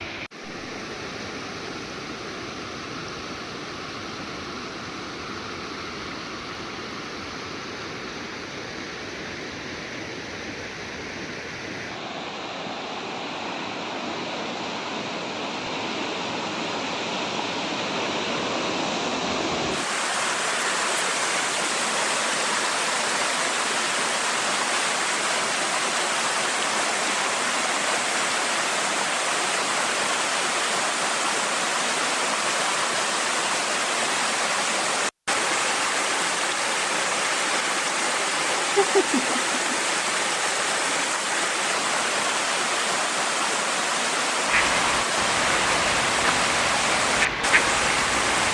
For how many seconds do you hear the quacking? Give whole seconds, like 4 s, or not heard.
4 s.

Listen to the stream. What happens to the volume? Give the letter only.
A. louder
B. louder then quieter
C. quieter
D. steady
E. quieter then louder
A.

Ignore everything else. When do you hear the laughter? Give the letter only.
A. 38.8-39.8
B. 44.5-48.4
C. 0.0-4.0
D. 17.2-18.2
A.